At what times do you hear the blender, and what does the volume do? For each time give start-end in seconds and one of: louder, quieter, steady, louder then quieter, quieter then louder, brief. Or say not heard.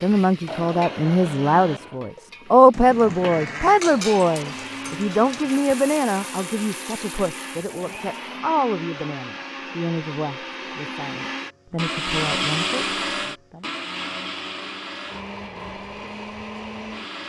0.2-17.2 louder then quieter.